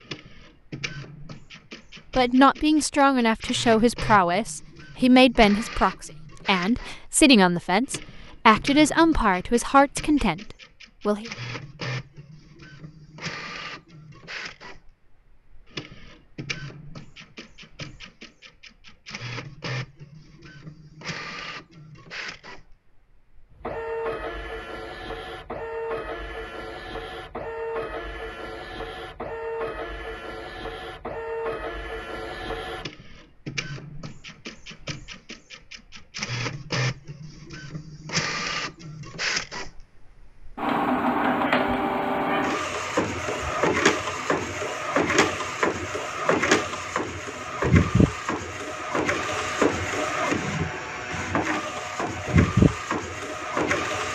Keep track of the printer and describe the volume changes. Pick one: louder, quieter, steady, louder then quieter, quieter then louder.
louder.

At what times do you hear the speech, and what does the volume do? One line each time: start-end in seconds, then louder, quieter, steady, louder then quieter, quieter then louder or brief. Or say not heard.
2.1-11.3 steady.